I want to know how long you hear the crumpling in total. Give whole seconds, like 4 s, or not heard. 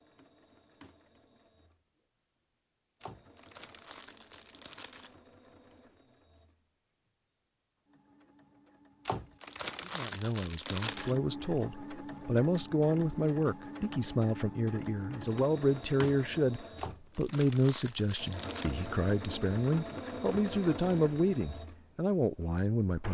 6 s.